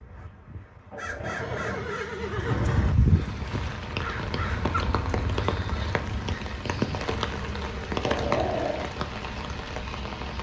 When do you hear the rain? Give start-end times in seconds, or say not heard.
3.1-10.3.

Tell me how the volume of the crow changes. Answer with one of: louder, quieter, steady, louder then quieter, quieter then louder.
louder then quieter.